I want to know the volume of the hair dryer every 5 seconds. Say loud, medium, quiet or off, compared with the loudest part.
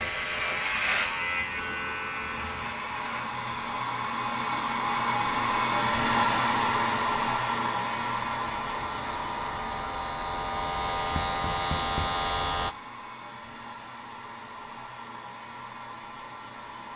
medium, loud, quiet, quiet.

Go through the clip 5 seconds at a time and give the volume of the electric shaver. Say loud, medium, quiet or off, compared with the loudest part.
loud, medium, loud, off.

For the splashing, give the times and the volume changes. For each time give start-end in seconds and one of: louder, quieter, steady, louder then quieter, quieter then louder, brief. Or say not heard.
not heard.